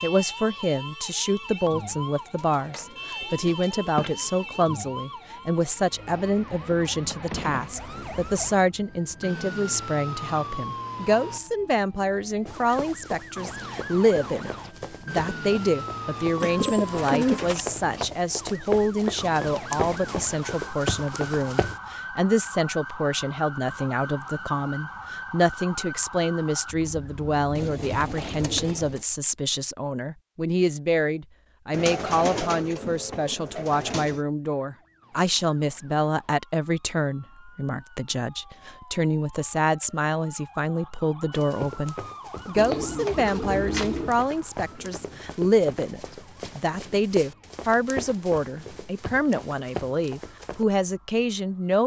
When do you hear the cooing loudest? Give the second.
17 s.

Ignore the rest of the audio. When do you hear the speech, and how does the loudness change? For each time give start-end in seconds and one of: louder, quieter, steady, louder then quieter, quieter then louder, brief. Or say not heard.
0.0-51.8 steady.